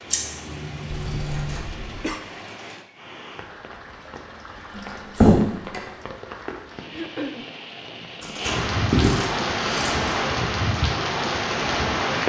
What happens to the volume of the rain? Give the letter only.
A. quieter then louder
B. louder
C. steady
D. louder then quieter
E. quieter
B.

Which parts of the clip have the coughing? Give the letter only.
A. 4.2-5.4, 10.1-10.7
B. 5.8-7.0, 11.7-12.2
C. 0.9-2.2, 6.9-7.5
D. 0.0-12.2
C.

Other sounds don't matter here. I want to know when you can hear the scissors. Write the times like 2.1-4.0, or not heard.
0.1-1.6, 4.8-5.8, 8.2-10.1.